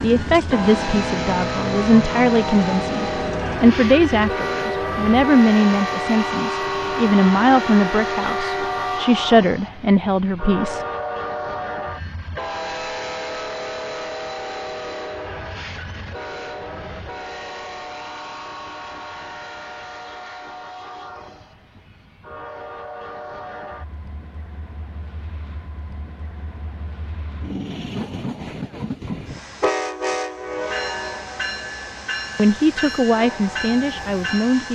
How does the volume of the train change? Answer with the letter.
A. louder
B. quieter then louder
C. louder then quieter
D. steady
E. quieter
B.